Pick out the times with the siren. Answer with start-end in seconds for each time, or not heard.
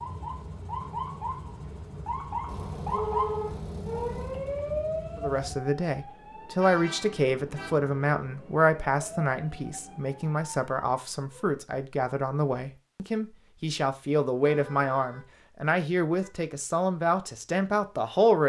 0.0-11.6.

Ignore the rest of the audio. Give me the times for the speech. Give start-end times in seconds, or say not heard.
5.2-18.4.